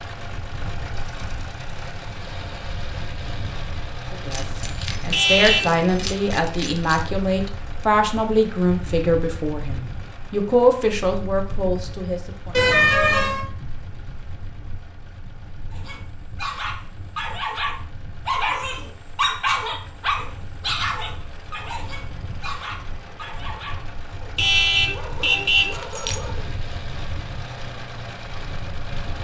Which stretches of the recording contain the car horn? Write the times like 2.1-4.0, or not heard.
5.1-5.8, 12.5-13.4, 24.4-25.8.